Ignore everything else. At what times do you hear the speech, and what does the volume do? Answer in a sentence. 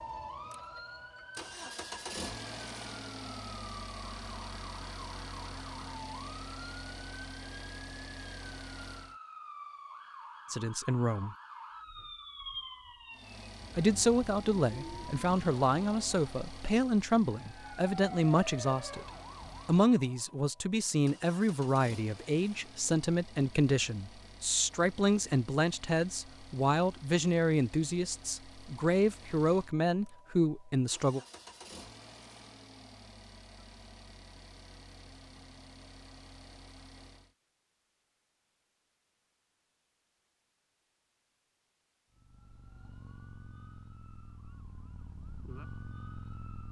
The speech can be heard briefly from 10.5 to 11.3 s; from 13.8 to 19.1 s, at a steady volume; and from 19.6 to 31.2 s, at a steady volume.